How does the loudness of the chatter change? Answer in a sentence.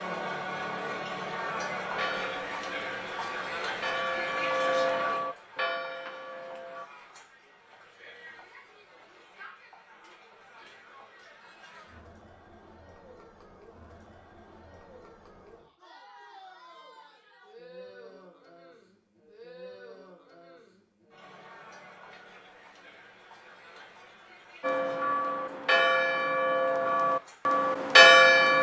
The loudness of the chatter goes down.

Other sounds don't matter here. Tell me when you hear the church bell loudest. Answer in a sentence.
The volume of the church bell peaks at 28 seconds.